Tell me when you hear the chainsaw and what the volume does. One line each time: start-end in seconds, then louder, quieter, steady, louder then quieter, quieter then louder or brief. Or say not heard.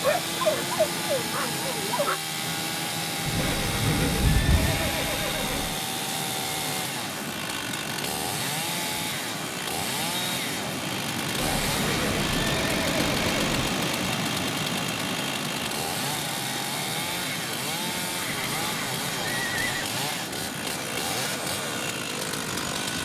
0.0-22.9 steady.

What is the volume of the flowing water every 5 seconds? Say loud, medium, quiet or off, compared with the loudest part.
medium, medium, loud, medium, medium.